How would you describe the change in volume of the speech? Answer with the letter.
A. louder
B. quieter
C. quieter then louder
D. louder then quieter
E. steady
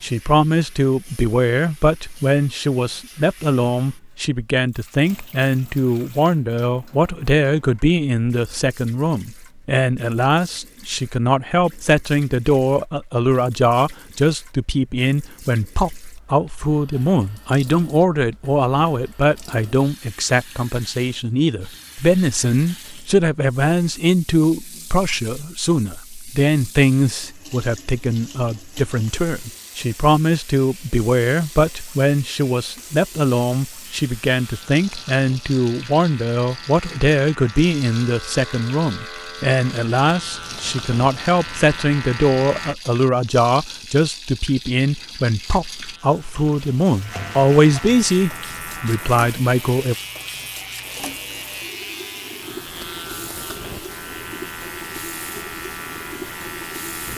E.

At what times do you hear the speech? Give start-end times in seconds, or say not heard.
0.0-50.0.